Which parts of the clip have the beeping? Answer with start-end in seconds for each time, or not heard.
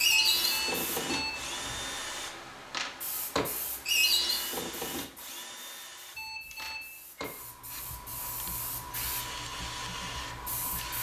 0.1-1.9, 6.2-6.8.